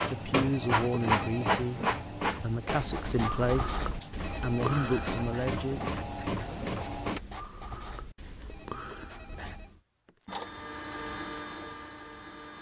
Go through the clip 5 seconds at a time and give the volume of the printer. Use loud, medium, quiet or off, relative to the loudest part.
loud, loud, medium.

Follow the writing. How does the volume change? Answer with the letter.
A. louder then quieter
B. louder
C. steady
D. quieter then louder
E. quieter
E.